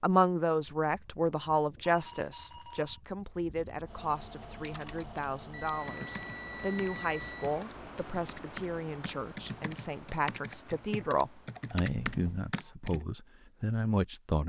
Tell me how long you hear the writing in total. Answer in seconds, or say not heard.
not heard.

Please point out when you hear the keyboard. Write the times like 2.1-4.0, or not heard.
4.5-13.1.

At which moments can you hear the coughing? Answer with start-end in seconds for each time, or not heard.
not heard.